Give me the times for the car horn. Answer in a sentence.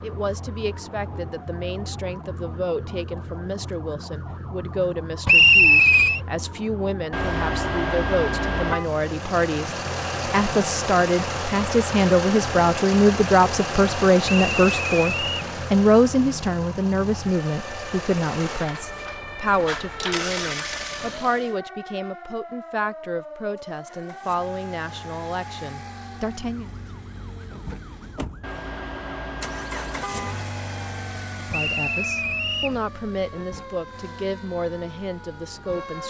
You can hear the car horn from 7.1 to 8.9 s and from 28.4 to 30.4 s.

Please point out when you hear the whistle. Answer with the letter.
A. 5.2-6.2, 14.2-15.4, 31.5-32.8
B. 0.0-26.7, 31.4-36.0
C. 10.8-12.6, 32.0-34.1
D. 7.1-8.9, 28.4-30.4
A.